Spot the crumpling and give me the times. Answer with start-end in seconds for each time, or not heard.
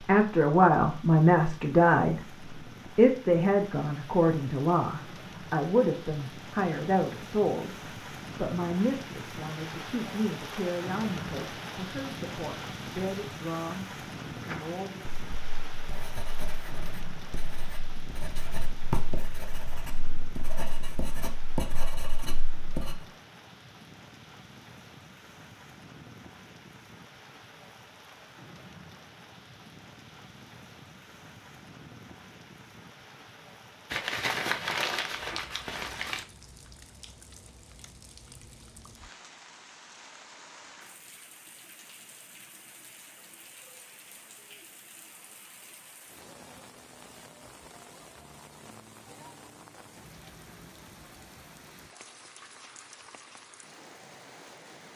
33.9-36.2.